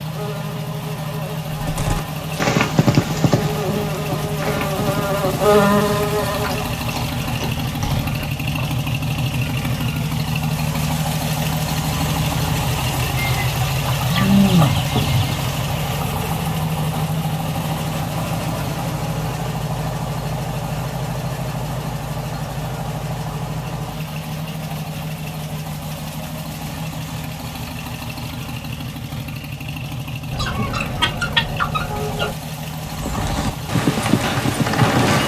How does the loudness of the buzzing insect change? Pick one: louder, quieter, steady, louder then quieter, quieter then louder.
louder.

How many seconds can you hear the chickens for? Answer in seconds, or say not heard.
4 s.